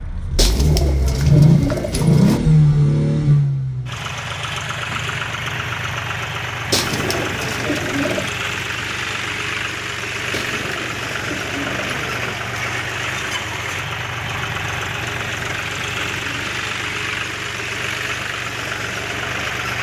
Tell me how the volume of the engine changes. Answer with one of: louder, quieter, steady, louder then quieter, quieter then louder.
quieter.